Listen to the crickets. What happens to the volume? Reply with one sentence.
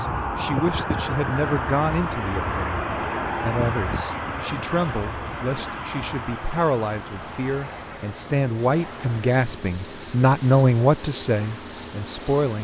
The volume of the crickets goes up.